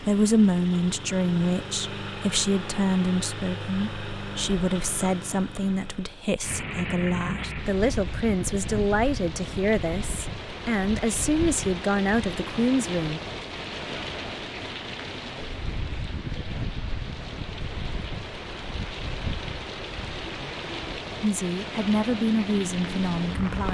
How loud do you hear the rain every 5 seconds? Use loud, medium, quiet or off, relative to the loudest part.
off, loud, loud, loud, loud.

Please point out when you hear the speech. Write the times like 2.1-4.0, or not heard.
0.0-13.2, 21.2-23.6.